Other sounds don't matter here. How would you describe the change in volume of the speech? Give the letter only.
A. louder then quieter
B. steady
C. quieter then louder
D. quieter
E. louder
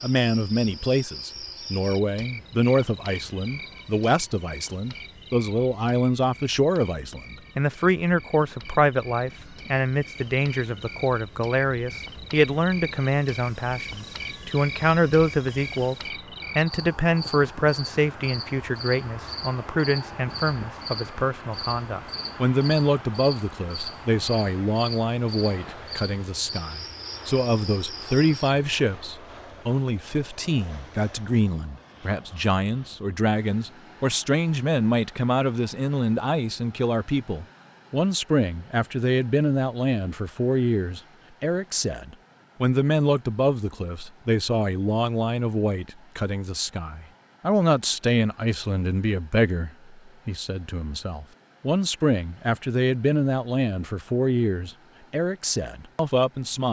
B.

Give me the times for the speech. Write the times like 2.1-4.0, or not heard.
0.0-15.9, 16.6-56.6.